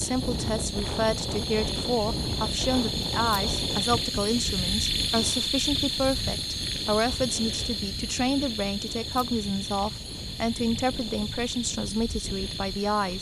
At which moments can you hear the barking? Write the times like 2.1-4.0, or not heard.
not heard.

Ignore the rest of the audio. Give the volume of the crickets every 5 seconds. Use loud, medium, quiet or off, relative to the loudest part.
loud, loud, medium.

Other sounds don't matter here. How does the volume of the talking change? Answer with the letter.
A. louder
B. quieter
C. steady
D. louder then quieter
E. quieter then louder
C.